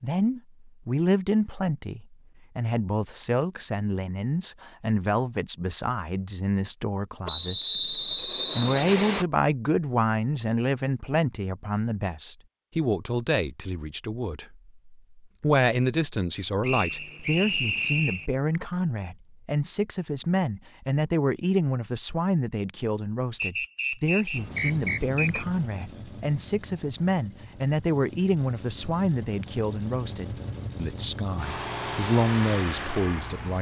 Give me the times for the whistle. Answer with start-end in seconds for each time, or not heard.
7.2-9.2, 16.6-18.3, 23.4-25.4.